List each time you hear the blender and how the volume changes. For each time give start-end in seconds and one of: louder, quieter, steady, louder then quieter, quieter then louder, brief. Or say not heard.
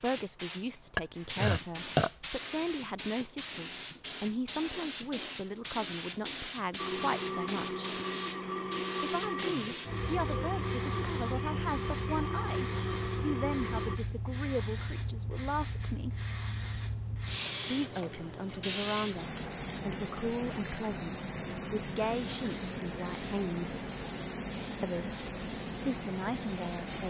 6.8-14.0 steady.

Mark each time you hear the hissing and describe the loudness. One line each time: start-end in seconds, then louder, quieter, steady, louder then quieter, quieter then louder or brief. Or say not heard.
0.0-27.0 steady.